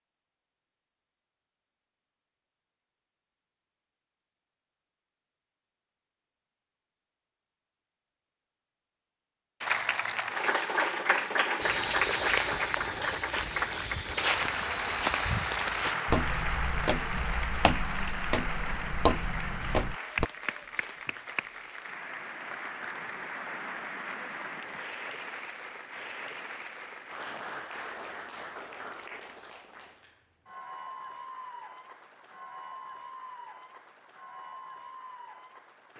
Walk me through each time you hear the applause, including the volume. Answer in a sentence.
You can hear the applause from 9.6 to 35.9 s, getting quieter.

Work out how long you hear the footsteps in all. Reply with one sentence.
The footsteps can be heard for 9 seconds in total.